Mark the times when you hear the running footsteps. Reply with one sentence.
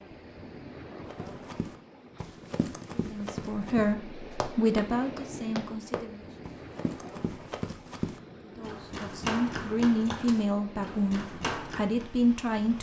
The running footsteps can be heard from 1.1 to 12.1 s.